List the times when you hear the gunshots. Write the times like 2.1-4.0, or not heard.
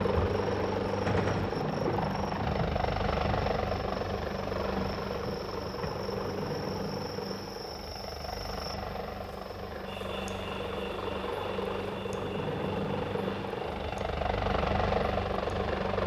1.1-1.6.